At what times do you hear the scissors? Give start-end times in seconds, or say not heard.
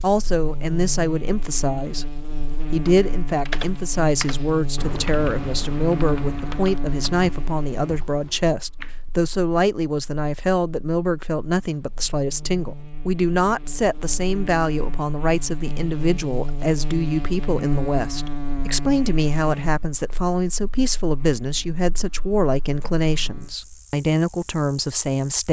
not heard.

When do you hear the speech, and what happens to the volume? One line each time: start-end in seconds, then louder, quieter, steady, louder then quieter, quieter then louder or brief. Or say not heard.
0.0-25.4 steady.